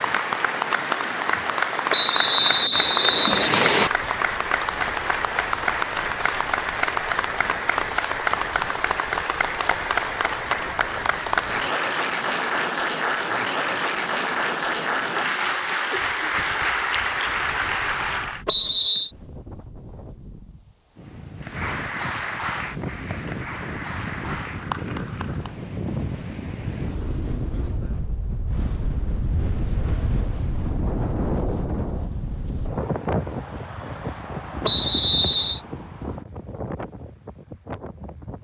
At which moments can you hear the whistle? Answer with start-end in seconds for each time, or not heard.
1.9-3.9, 18.4-19.1, 34.6-35.6.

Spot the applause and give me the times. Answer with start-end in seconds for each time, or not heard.
0.0-18.4, 21.4-25.6.